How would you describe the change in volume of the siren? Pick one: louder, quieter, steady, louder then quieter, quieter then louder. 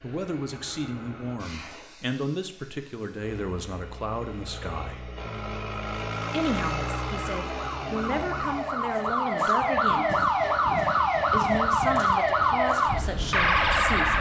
louder.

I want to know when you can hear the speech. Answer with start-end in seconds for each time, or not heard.
0.0-5.1, 6.3-10.2, 11.2-14.1.